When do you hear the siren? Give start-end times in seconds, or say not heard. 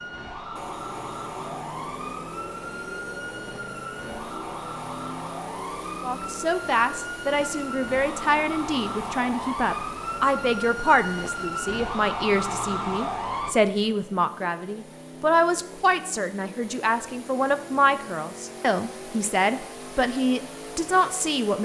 0.0-13.6.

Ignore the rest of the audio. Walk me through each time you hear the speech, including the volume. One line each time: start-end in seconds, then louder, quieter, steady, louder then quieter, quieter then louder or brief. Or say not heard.
6.0-21.6 steady.